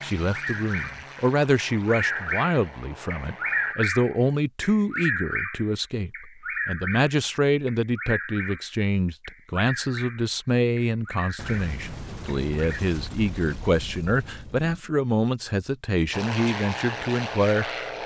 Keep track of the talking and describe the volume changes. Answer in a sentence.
The volume of the talking stays about the same.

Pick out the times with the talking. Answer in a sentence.
The talking can be heard from 0.0 to 17.7 s.